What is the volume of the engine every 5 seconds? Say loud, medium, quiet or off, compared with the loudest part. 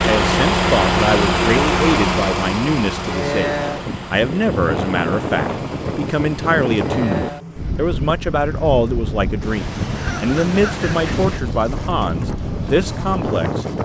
loud, quiet, quiet.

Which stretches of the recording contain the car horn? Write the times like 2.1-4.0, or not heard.
not heard.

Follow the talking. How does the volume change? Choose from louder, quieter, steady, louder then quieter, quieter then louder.
steady.